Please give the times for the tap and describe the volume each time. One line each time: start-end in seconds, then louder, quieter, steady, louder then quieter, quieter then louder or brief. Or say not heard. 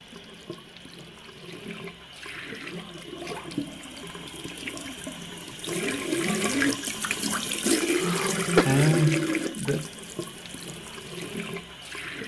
0.0-12.2 louder then quieter.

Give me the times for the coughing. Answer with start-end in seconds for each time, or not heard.
7.8-8.7.